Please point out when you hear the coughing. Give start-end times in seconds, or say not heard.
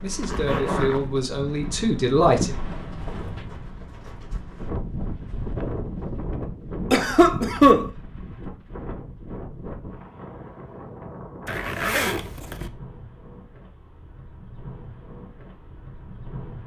6.9-7.9.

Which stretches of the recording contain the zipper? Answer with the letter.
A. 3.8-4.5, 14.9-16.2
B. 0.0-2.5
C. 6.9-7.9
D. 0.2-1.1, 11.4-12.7
D.